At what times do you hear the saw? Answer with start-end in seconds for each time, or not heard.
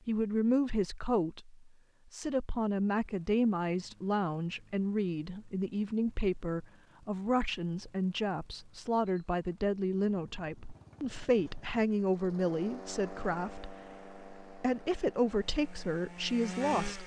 15.3-17.0.